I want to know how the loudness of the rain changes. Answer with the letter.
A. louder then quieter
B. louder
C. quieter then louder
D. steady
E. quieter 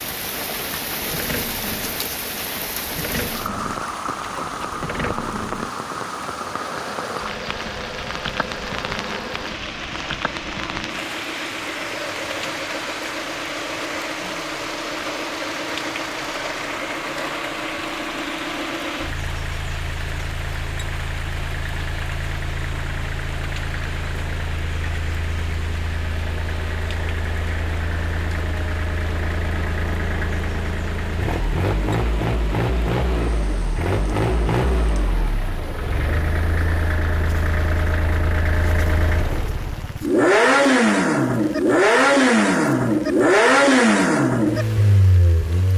E.